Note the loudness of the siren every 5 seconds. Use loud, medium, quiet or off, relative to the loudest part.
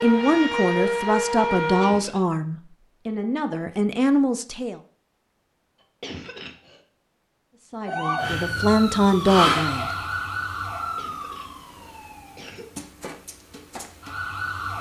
loud, loud, medium.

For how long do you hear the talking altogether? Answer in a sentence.
The talking can be heard for 7 seconds in total.